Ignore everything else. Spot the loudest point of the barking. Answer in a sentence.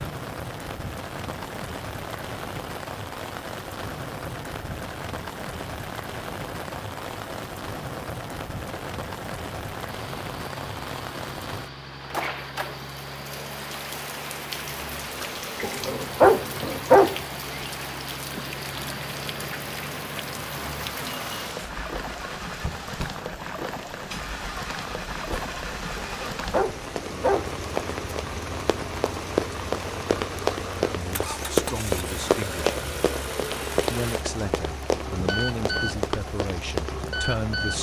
The loudest moment of the barking is at 17 seconds.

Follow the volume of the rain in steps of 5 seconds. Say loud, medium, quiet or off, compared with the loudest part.
loud, loud, loud, loud, loud, loud, loud, medium.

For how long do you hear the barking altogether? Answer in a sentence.
The barking can be heard for 3 seconds in total.